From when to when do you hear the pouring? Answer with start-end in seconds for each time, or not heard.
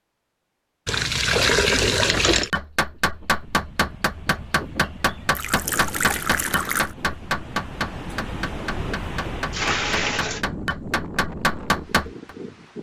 0.8-2.5, 5.3-6.9, 9.3-10.4.